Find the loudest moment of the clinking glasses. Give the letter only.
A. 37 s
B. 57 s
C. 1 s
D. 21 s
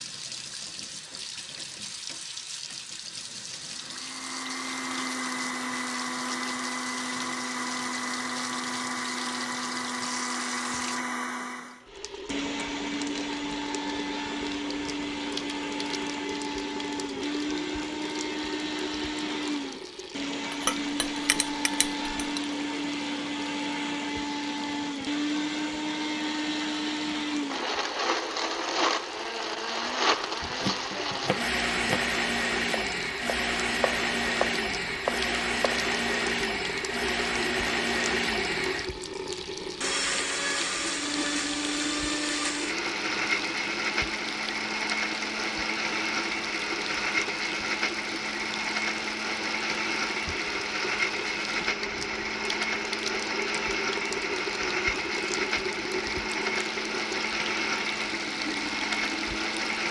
D.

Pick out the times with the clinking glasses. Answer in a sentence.
The clinking glasses can be heard from 20.5 to 22.4 s.